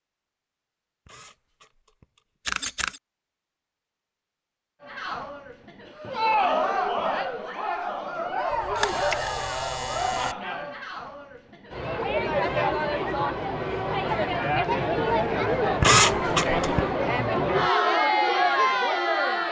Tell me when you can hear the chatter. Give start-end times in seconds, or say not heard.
4.8-19.4.